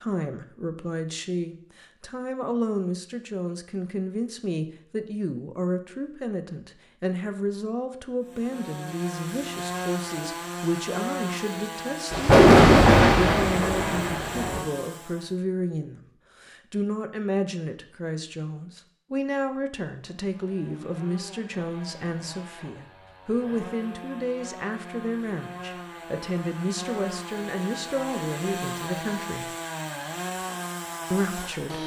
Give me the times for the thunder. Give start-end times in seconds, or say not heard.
12.1-14.6.